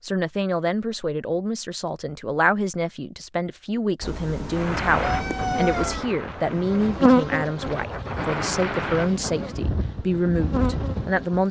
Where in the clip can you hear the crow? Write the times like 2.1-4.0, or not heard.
not heard.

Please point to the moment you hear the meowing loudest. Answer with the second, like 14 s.
6 s.